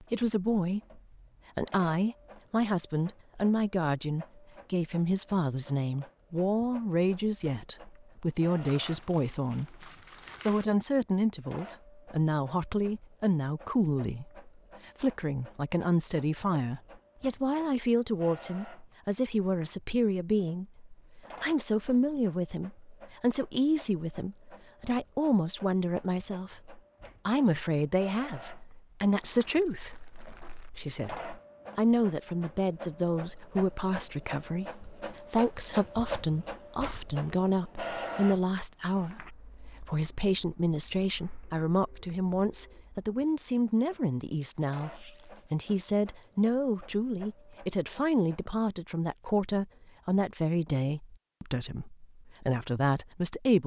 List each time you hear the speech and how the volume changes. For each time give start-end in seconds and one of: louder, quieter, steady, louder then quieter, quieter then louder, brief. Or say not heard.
0.0-53.6 steady.